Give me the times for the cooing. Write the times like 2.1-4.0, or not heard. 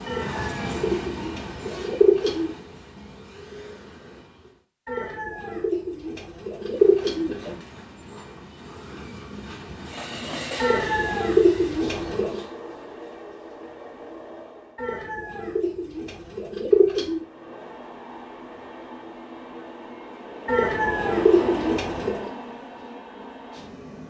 0.1-2.5, 4.8-7.5, 10.6-12.4, 14.8-17.2, 20.4-22.3.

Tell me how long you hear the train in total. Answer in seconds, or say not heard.
20 s.